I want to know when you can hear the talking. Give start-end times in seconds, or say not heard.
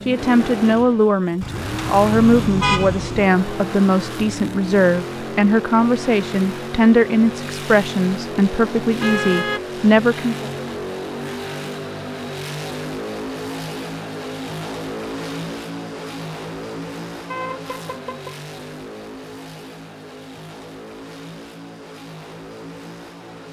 0.1-10.5.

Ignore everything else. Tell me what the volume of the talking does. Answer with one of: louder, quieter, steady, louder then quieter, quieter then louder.
steady.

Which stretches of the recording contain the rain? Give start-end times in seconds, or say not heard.
not heard.